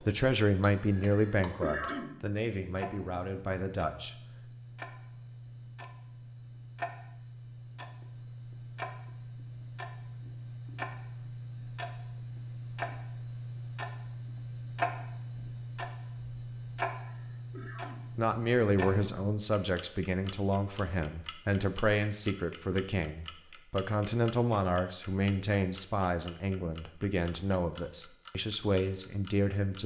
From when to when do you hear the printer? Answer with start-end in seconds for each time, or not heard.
not heard.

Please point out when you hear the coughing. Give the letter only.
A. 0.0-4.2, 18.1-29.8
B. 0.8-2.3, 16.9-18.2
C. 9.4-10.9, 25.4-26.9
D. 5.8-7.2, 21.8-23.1
B.